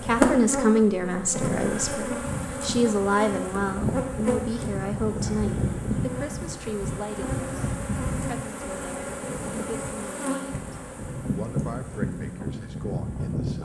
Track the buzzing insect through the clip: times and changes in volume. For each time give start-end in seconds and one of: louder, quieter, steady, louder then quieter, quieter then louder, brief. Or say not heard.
0.0-13.6 steady.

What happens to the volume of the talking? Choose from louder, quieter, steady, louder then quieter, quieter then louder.
quieter.